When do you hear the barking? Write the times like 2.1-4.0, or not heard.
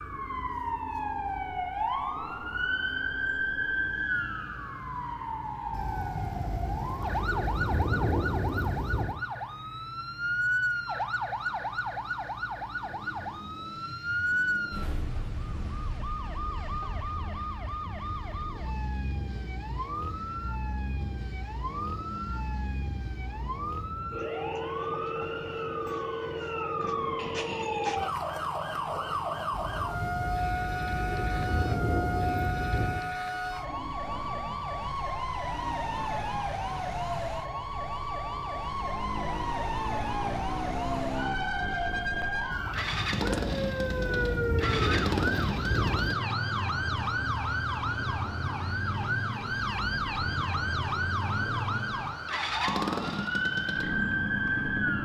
not heard.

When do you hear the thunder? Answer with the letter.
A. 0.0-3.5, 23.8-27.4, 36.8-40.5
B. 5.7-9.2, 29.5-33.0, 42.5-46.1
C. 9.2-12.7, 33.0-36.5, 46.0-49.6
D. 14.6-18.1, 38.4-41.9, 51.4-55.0
B.